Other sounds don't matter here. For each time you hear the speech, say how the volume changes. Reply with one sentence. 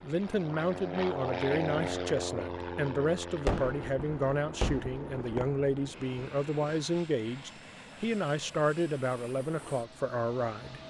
You can hear the speech from 0.0 to 10.8 s, at a steady volume.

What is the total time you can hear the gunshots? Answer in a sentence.
You can hear the gunshots for 3 seconds altogether.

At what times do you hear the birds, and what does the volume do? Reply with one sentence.
You can't hear the birds here.